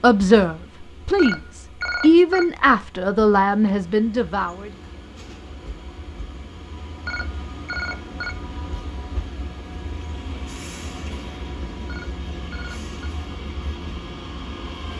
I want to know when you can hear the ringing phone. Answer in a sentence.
The ringing phone can be heard from 1.1 to 2.5 s, from 7.0 to 8.3 s and from 11.8 to 13.1 s.